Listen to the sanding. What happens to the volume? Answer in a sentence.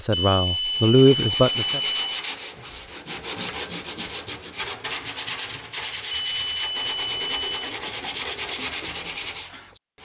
The volume of the sanding stays about the same.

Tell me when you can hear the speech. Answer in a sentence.
You can hear the speech from 0.0 to 1.8 s.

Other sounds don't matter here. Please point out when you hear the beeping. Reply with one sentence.
The beeping can be heard from 0.1 to 2.2 s and from 6.1 to 7.8 s.